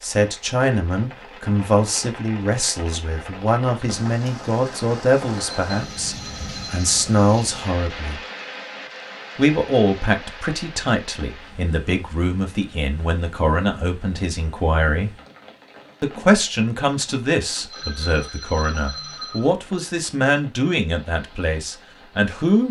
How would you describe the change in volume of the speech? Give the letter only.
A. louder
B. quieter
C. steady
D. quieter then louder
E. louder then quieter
C.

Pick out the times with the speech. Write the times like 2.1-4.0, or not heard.
0.0-8.2, 9.3-15.2, 16.0-22.6.